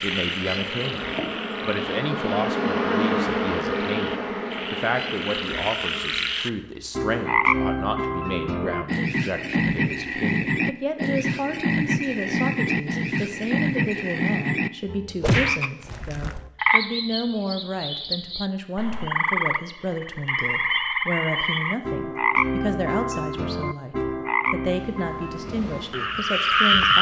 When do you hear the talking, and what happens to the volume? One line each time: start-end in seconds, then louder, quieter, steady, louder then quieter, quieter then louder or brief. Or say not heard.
0.0-26.9 steady.